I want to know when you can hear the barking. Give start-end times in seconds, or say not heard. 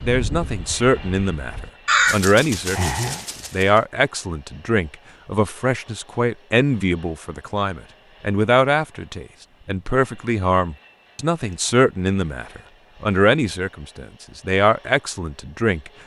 not heard.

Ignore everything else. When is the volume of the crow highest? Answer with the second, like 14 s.
2 s.